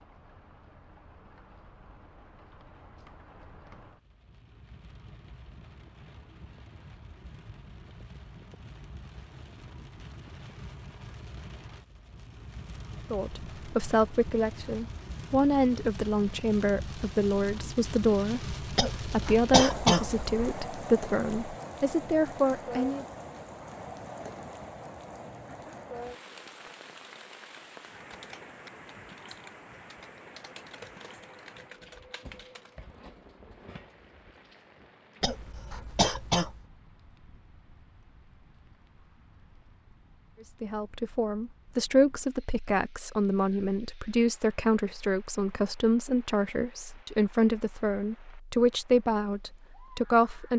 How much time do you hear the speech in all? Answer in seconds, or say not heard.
20 s.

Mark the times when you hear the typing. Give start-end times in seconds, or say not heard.
26.1-32.9.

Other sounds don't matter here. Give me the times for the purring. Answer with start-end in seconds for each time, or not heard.
not heard.